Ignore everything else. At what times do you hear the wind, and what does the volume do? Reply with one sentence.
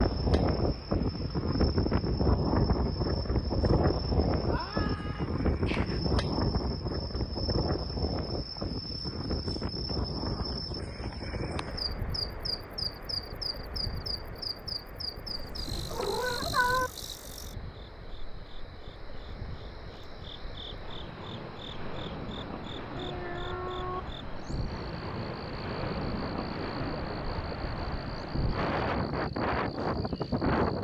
You can hear the wind from 0.0 to 30.7 s, getting quieter then louder.